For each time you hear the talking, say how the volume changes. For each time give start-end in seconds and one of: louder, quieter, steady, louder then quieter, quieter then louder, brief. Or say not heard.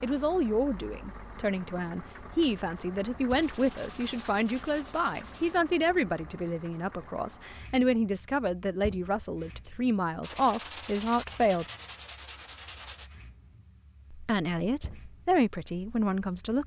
0.0-11.7 steady
14.1-16.6 brief.